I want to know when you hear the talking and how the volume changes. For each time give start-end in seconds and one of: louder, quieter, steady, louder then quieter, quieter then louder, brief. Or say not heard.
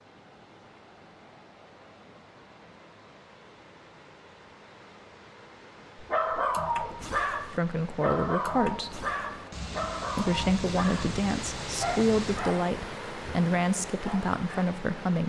7.5-9.1 brief
10.2-15.2 steady.